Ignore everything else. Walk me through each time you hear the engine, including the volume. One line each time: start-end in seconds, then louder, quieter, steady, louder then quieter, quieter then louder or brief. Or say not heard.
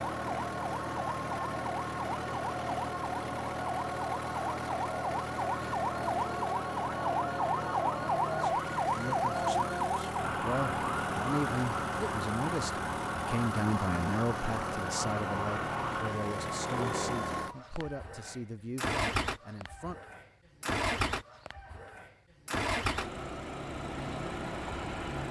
0.0-25.2 steady.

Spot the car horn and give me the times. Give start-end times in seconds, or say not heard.
not heard.